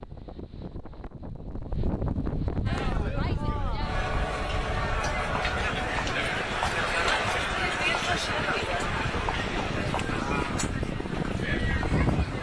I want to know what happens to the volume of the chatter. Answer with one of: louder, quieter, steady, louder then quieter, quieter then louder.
louder then quieter.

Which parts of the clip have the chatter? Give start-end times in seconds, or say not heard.
2.6-12.3.